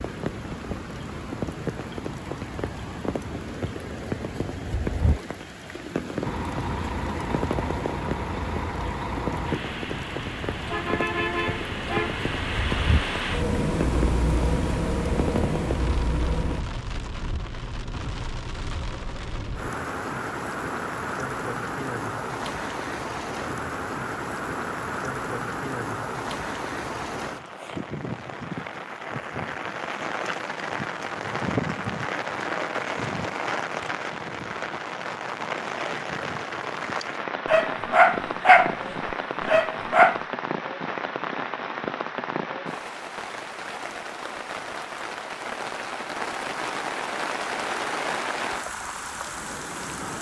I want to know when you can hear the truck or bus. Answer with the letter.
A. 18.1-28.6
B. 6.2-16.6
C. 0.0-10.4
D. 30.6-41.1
B.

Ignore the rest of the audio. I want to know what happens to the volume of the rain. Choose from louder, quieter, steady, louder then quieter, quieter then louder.
steady.